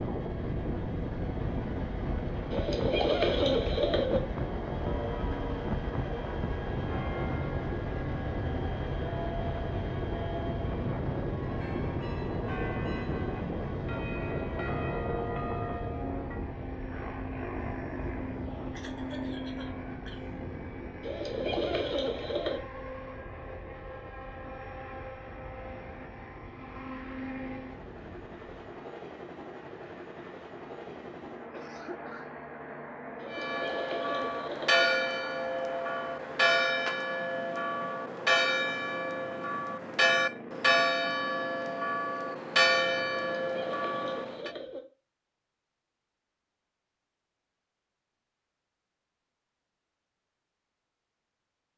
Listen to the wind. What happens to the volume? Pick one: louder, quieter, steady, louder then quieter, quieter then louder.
quieter.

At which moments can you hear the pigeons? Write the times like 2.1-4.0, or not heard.
2.5-4.2, 21.0-22.6, 33.1-34.9, 43.4-44.8.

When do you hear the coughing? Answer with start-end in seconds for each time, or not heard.
18.7-20.4, 31.0-32.4.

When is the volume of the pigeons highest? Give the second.
3 s.